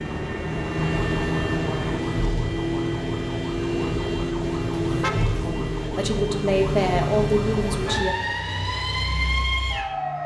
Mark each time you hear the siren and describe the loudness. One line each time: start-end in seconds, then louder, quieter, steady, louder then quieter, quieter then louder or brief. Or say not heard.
0.0-10.2 steady.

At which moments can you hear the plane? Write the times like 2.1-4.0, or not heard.
0.0-2.0.